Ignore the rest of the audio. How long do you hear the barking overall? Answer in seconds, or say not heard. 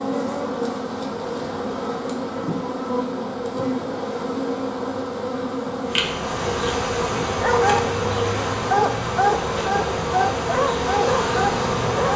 4 s.